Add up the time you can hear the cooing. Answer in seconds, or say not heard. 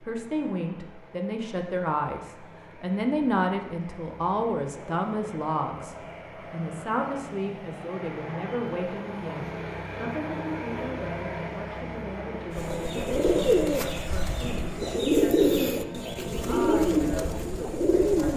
6 s.